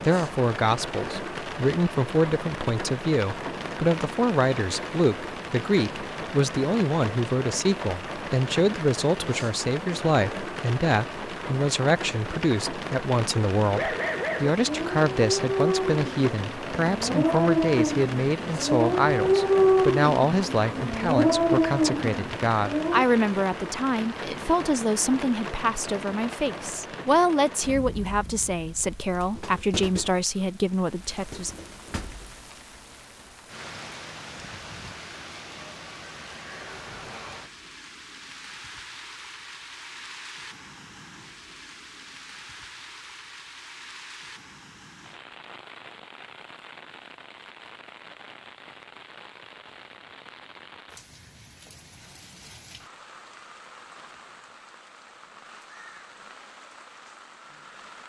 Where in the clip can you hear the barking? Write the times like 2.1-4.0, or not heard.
13.7-23.1.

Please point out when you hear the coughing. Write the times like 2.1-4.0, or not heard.
not heard.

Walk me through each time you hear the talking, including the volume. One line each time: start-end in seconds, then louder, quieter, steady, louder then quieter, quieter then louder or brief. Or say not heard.
0.0-31.5 steady.